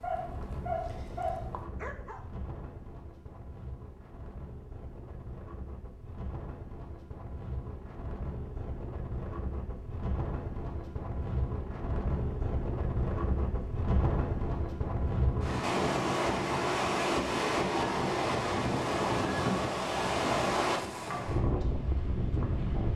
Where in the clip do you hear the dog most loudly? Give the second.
1 s.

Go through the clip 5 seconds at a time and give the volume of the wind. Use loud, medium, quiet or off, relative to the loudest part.
quiet, quiet, medium, loud, loud.